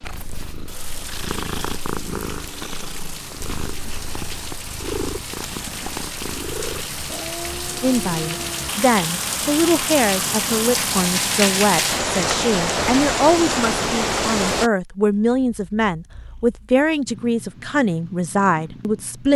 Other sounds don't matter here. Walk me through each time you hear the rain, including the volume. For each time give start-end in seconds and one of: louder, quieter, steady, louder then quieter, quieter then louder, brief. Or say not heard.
0.0-14.7 louder.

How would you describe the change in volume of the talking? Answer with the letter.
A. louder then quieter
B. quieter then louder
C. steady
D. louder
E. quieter
C.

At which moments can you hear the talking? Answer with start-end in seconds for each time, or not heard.
7.8-19.3.